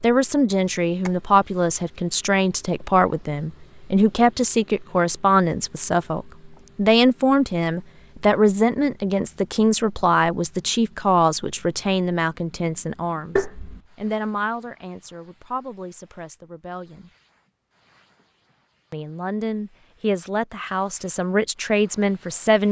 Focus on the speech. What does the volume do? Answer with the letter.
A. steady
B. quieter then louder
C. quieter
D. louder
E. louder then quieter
B.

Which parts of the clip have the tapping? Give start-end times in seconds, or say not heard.
13.3-13.8.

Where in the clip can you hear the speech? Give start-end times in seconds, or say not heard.
0.0-17.1, 18.9-22.6.